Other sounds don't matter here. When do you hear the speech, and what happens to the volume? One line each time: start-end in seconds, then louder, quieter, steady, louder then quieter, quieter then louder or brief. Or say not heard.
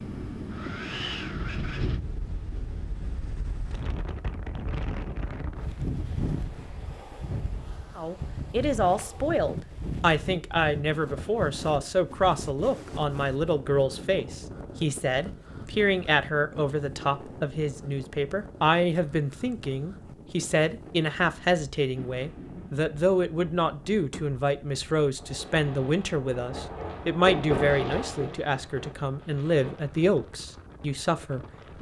8.0-31.7 steady.